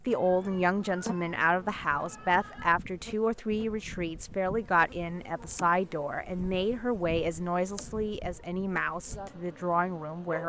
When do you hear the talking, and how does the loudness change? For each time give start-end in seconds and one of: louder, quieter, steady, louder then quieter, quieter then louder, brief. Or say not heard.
0.0-10.4 steady.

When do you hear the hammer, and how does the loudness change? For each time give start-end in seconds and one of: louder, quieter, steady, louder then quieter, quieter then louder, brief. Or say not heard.
not heard.